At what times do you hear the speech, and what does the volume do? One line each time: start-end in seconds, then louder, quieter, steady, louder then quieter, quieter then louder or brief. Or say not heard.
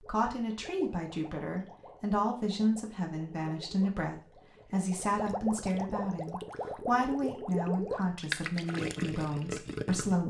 0.0-10.2 steady.